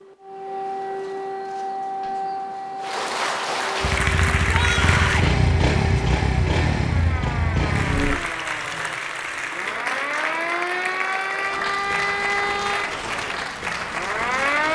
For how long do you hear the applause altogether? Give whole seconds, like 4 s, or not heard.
10 s.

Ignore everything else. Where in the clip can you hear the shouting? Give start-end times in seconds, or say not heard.
4.5-5.3.